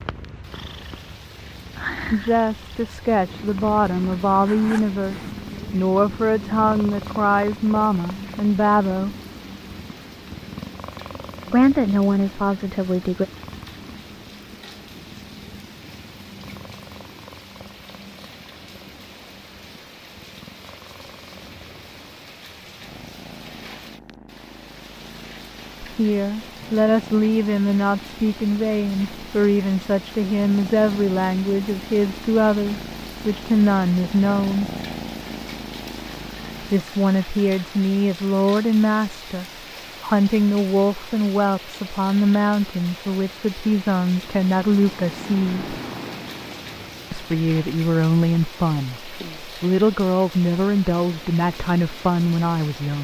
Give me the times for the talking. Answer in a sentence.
You can hear the talking from 2.1 to 9.2 s, from 11.5 to 13.2 s, from 25.8 to 34.7 s, from 36.6 to 45.8 s and from 47.1 to 52.9 s.